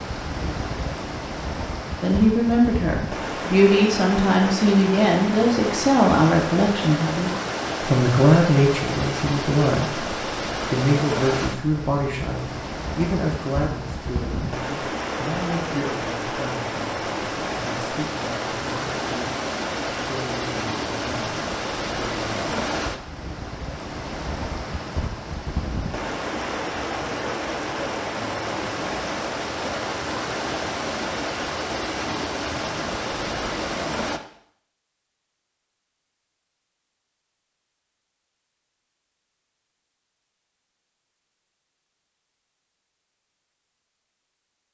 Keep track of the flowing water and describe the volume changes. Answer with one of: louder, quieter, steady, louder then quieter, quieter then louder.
steady.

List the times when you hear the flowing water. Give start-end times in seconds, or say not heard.
0.0-34.2.